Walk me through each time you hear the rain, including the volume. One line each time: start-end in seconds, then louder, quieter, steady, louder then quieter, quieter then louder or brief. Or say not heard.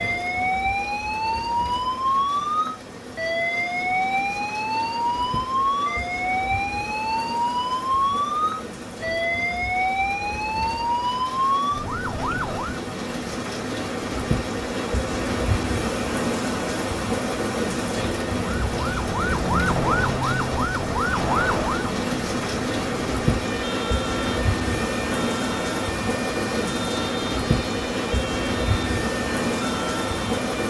0.0-30.6 louder.